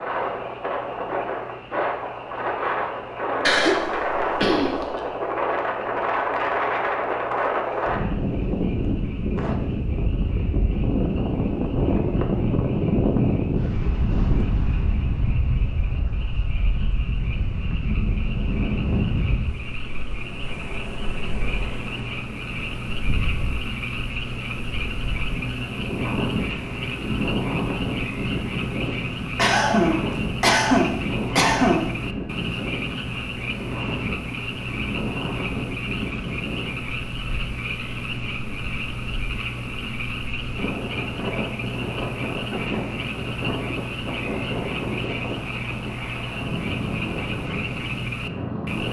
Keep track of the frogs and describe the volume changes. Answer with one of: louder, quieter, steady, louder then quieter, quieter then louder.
louder.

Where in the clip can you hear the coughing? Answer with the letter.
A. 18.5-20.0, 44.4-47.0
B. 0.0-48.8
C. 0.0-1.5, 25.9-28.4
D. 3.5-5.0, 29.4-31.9
D.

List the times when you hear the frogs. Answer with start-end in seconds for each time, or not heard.
0.0-48.8.